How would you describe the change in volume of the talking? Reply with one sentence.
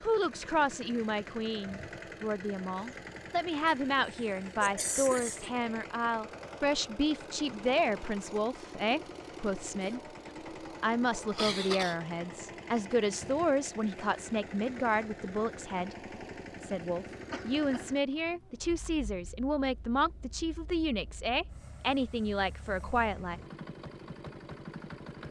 The loudness of the talking stays about the same.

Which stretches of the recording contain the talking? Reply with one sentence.
The talking can be heard from 0.0 to 10.0 s, from 10.8 to 15.9 s and from 16.6 to 23.4 s.